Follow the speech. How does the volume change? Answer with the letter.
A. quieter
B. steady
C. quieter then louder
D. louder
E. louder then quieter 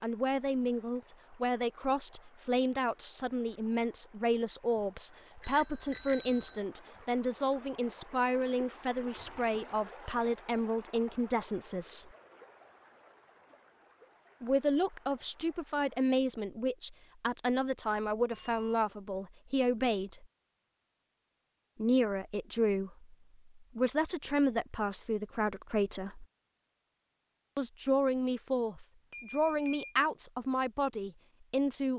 B.